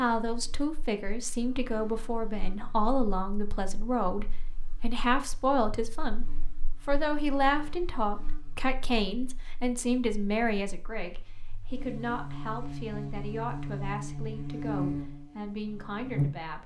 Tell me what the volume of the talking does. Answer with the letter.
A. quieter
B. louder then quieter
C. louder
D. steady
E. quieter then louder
A.